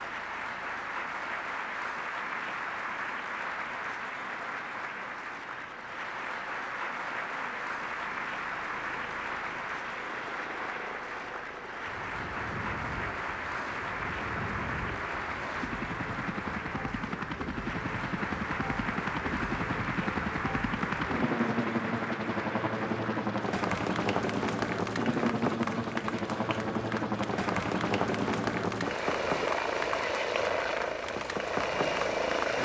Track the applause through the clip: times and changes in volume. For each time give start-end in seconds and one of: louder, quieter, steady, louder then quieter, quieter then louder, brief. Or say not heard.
0.0-32.6 steady.